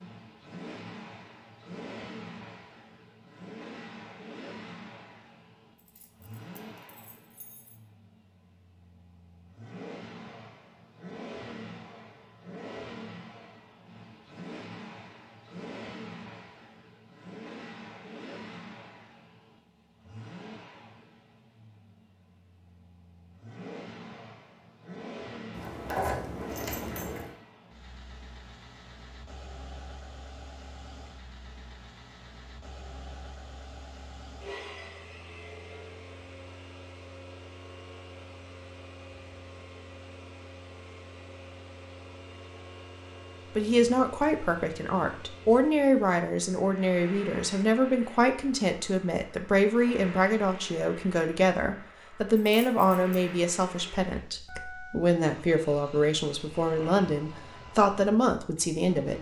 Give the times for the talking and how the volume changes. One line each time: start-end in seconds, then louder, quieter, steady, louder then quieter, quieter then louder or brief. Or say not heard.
43.5-59.1 steady.